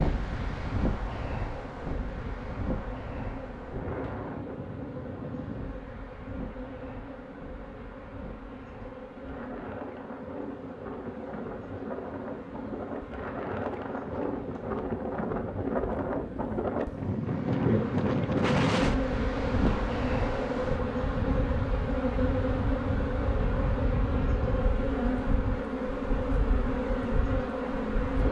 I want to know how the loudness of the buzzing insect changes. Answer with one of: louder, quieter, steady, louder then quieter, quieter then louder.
louder.